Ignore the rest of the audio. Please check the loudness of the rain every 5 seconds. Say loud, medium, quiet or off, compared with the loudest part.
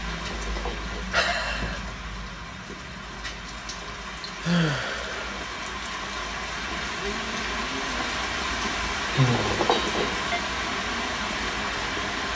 medium, loud, loud.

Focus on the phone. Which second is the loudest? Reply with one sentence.
The loudest moment of the phone is at 10 seconds.